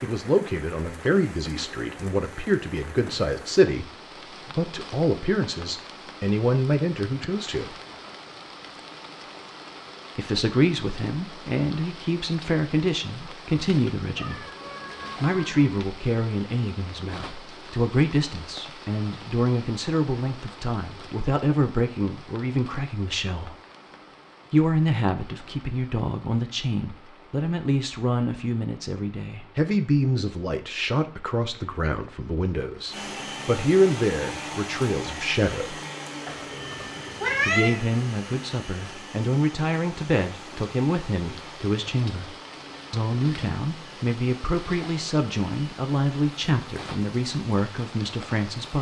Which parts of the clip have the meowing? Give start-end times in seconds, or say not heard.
14.0-15.8, 36.2-37.8.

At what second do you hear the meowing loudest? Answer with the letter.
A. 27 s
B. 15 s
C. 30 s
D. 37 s
D.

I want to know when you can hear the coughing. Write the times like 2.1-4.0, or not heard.
not heard.